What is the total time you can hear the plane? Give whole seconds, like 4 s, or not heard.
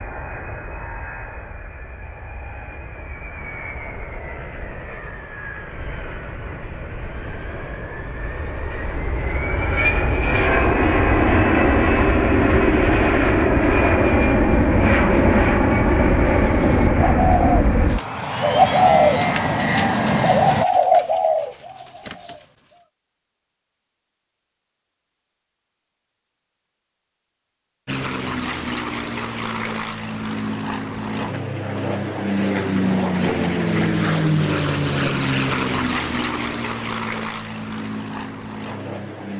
32 s.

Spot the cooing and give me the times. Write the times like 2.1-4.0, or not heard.
16.0-22.4.